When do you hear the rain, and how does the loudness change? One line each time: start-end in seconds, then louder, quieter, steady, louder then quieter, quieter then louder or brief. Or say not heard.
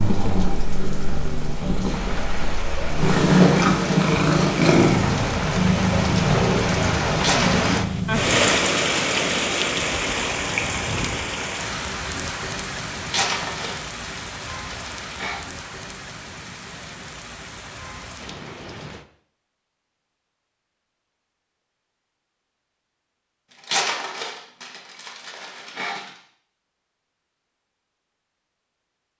0.0-19.1 louder then quieter.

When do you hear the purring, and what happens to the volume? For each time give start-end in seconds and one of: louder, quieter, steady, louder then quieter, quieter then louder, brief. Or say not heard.
0.0-8.4 louder then quieter.